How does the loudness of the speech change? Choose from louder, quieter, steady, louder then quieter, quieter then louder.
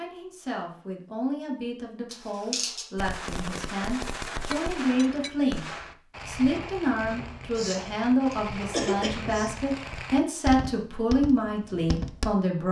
louder.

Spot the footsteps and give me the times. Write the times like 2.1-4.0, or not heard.
not heard.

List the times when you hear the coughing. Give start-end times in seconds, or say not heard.
2.1-2.9, 7.5-9.5.